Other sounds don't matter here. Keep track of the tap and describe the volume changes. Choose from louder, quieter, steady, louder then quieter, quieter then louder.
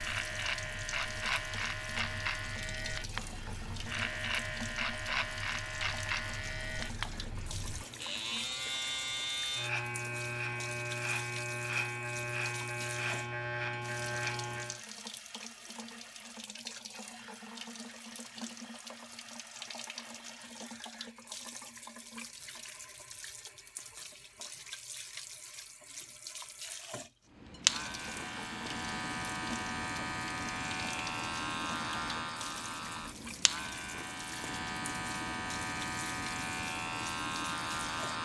steady.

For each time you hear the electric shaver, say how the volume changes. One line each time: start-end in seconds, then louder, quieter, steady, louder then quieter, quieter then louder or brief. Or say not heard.
0.0-14.8 steady
27.3-38.2 steady.